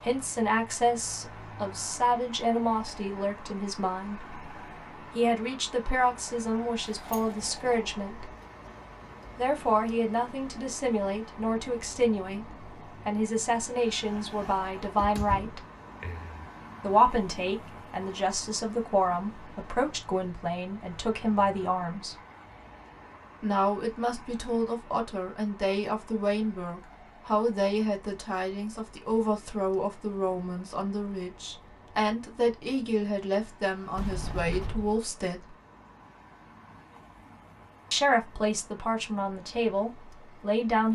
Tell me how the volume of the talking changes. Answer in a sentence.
The volume of the talking stays about the same.